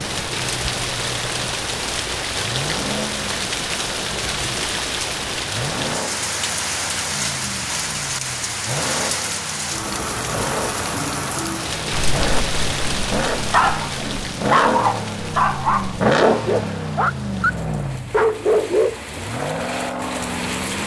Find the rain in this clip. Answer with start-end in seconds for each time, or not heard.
0.0-20.8.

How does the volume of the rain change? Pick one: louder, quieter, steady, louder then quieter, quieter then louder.
quieter.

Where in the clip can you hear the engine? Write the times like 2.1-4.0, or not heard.
0.0-20.8.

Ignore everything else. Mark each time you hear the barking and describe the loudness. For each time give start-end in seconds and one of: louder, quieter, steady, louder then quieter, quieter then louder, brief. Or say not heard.
11.9-19.3 louder.